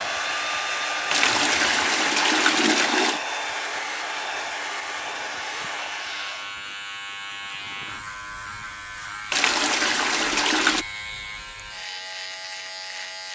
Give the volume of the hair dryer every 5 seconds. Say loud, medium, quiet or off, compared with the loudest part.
loud, medium, off.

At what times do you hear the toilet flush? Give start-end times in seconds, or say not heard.
1.1-3.2, 9.3-10.8.